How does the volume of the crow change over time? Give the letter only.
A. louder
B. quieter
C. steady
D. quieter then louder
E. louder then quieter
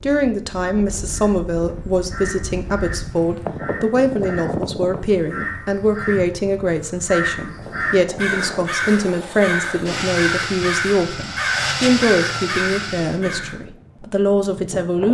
A.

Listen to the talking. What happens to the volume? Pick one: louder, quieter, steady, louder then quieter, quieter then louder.
steady.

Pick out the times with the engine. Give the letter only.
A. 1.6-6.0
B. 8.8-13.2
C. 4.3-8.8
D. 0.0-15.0
B.